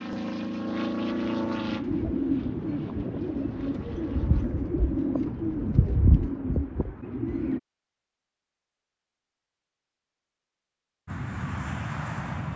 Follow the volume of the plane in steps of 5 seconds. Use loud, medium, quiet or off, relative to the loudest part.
loud, off, loud.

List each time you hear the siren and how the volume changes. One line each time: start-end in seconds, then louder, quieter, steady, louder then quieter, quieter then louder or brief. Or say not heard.
not heard.